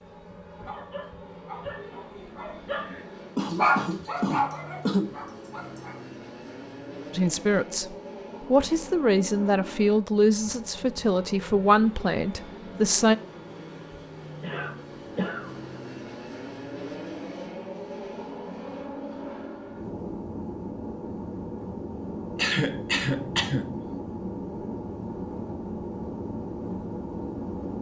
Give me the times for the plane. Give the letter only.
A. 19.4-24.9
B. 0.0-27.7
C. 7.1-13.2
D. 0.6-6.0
B.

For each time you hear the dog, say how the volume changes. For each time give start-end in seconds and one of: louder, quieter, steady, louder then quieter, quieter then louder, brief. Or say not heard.
0.6-6.0 louder then quieter.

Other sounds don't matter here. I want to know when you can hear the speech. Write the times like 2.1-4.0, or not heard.
7.1-13.2.